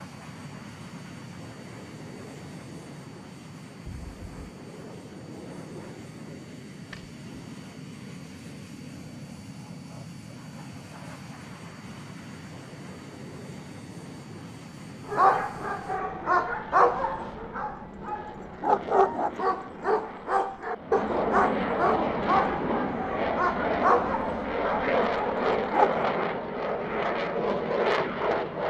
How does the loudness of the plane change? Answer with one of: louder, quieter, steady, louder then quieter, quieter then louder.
louder.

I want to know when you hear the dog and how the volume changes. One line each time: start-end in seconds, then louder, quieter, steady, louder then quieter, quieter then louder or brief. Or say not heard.
15.1-26.1 steady.